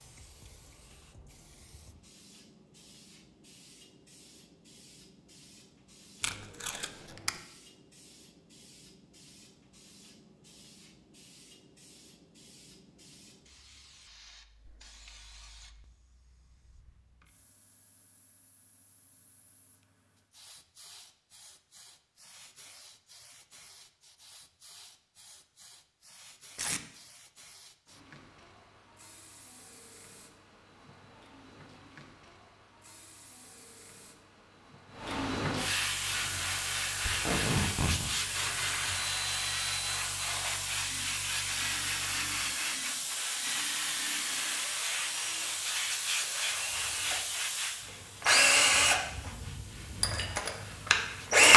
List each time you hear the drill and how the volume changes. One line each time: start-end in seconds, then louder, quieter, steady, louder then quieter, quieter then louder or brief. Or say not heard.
35.9-51.5 louder.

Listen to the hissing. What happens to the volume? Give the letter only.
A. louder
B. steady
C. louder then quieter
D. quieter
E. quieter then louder
A.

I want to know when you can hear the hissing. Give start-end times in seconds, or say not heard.
0.0-51.5.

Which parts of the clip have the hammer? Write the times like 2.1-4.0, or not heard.
not heard.